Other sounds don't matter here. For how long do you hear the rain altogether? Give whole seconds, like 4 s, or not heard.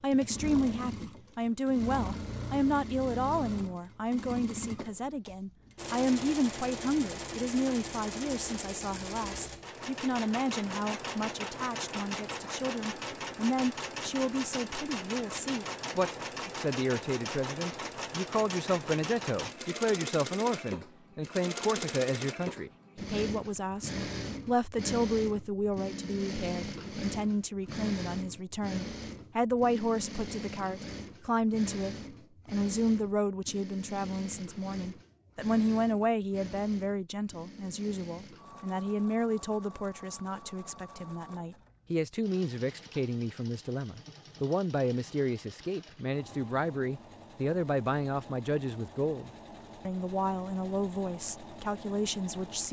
not heard.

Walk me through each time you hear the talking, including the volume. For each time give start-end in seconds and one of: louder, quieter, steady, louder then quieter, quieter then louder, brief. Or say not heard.
0.0-52.6 steady.